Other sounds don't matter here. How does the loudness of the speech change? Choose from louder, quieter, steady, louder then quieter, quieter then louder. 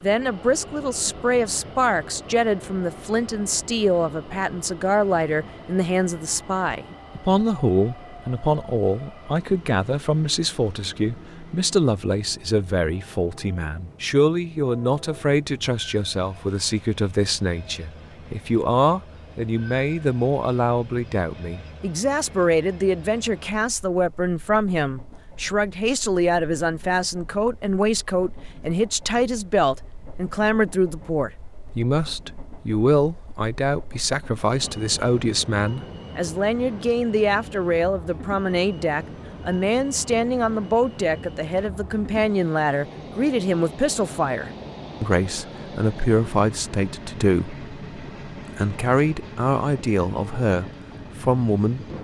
steady.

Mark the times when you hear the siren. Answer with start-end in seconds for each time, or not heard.
not heard.